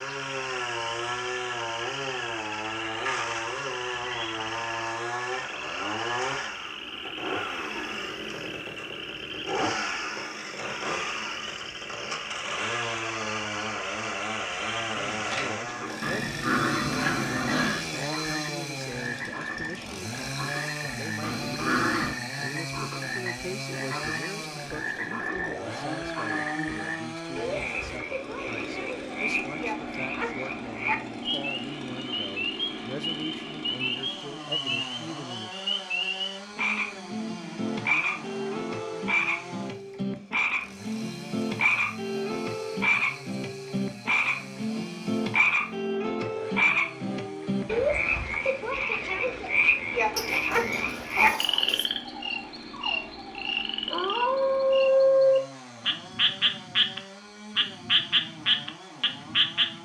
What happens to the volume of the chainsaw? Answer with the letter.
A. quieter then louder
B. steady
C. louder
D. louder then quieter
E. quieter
E.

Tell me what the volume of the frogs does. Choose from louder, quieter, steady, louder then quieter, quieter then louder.
louder.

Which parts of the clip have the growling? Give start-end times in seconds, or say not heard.
16.0-17.9, 21.2-22.1, 50.1-51.9.